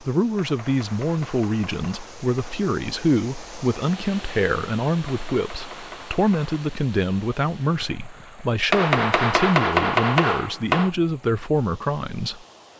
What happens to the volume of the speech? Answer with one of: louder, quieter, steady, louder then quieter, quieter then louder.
steady.